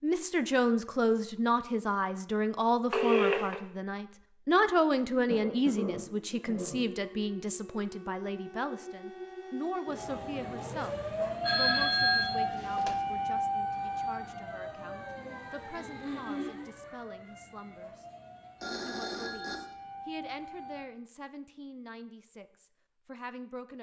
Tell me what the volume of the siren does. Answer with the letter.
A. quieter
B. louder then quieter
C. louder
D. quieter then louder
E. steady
B.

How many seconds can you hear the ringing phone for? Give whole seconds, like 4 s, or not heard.
3 s.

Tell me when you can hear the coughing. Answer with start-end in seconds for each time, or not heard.
5.2-6.8, 15.8-16.6.